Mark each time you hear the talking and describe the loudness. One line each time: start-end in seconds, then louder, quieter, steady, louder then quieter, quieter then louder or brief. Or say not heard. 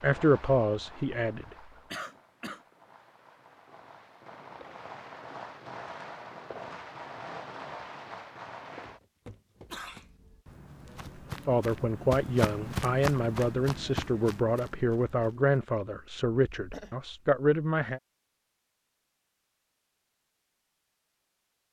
0.0-1.6 brief
11.4-18.0 steady.